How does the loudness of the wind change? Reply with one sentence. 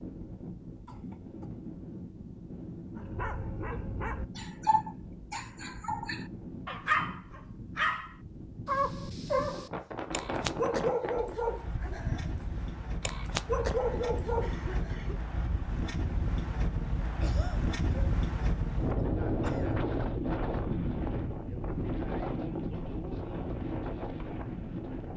The loudness of the wind goes up.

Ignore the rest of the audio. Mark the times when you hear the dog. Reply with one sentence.
You can hear the dog from 3.0 to 15.0 s.